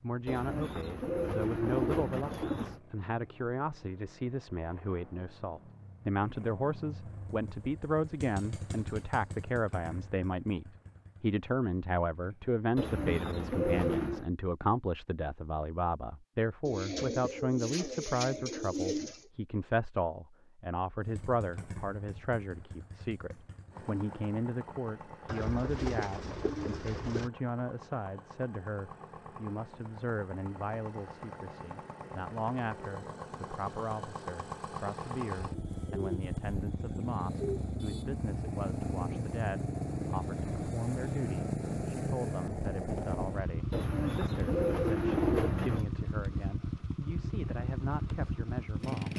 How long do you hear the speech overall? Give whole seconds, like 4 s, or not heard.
49 s.